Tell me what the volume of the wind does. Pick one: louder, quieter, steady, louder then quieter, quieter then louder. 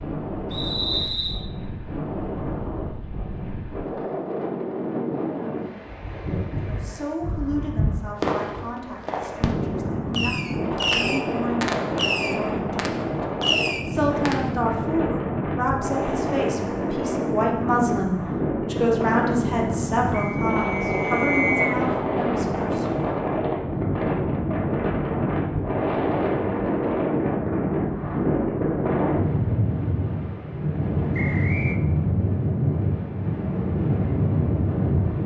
louder.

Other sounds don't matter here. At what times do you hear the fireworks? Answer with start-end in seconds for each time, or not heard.
8.2-14.4.